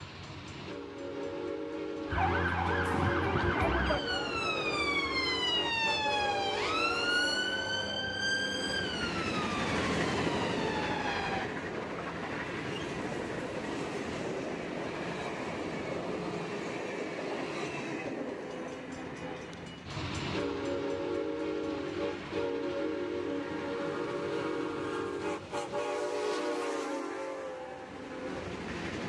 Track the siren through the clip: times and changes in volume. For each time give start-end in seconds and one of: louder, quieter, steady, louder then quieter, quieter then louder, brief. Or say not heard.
2.0-11.5 quieter.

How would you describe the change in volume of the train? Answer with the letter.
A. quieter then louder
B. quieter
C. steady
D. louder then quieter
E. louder
C.